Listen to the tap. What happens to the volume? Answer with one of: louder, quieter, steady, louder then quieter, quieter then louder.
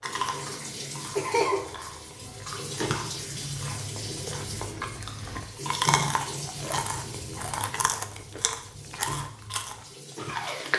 quieter.